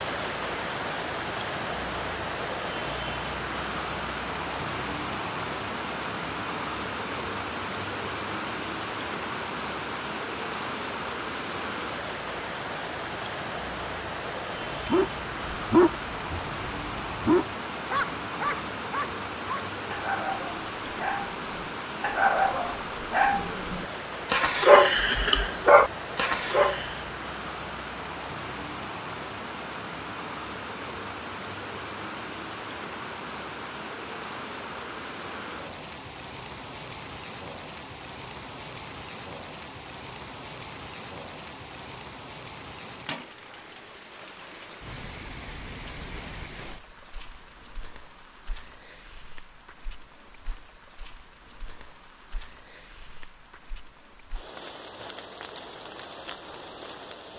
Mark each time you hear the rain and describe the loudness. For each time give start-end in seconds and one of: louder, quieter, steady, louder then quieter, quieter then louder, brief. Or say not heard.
0.0-57.3 quieter.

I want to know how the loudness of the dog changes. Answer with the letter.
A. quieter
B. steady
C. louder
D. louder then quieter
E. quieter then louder
E.